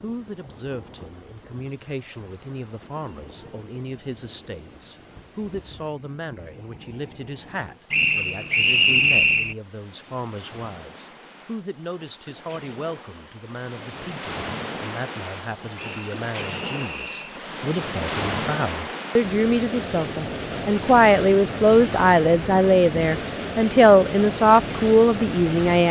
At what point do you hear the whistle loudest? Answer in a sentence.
The volume of the whistle peaks at 9 seconds.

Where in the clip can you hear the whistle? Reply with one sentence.
The whistle can be heard from 7.9 to 9.6 s and from 15.8 to 17.4 s.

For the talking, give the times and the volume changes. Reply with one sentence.
The talking can be heard from 0.0 to 25.8 s, getting louder.